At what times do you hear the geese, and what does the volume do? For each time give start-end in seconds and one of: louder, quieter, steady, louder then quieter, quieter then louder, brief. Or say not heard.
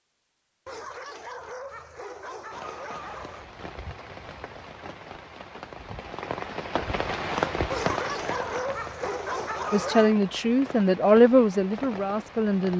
not heard.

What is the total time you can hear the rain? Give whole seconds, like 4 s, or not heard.
10 s.